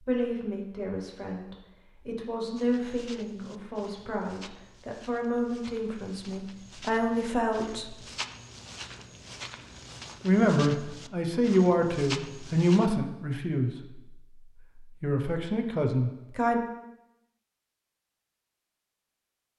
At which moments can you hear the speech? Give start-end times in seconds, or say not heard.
0.0-8.0, 10.2-14.0, 15.0-16.6.